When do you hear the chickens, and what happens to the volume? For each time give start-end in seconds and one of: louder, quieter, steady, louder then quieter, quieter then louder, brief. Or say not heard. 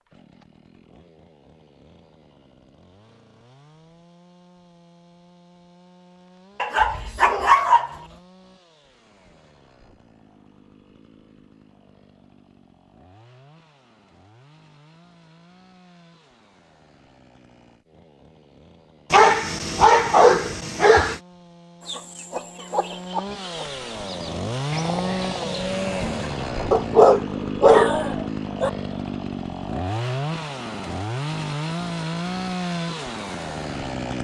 21.9-27.1 steady.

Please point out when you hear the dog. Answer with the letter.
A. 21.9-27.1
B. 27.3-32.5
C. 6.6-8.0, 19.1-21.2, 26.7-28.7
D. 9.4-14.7
C.